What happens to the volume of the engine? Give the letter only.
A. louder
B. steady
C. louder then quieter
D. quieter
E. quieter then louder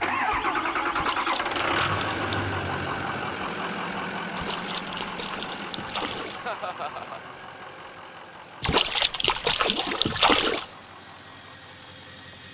D.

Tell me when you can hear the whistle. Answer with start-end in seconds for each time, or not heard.
not heard.